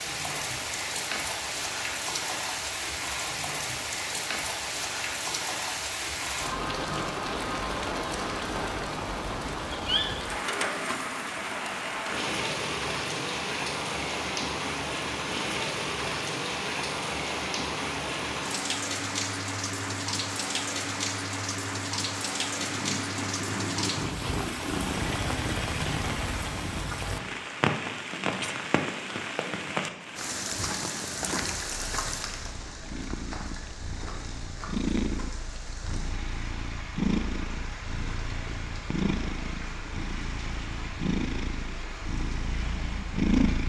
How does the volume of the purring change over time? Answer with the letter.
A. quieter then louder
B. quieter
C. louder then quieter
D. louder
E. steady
A.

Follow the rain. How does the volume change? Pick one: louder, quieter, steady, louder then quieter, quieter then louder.
quieter.